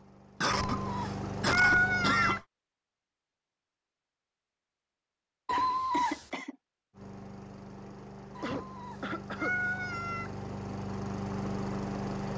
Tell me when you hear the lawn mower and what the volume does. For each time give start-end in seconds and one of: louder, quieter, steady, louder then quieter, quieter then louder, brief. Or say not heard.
0.0-2.5 brief
6.9-12.3 louder.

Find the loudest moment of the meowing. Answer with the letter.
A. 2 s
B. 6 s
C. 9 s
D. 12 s
A.